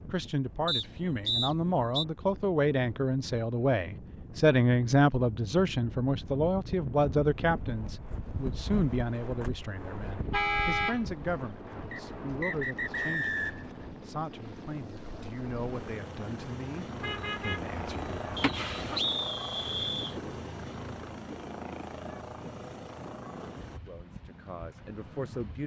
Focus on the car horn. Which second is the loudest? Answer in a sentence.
The volume of the car horn peaks at 11 seconds.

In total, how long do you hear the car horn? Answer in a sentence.
You can hear the car horn for 3 seconds altogether.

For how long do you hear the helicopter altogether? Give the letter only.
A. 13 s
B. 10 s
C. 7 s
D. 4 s
A.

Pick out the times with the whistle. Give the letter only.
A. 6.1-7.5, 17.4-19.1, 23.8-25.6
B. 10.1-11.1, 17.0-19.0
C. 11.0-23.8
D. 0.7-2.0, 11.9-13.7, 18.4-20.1
D.